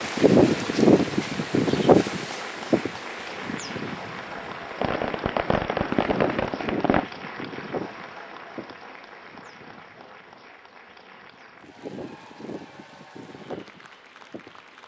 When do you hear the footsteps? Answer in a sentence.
You can't hear the footsteps here.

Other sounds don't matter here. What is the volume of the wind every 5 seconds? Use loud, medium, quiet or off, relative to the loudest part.
loud, quiet, quiet.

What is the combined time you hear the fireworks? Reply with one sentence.
You can hear the fireworks for 3 seconds altogether.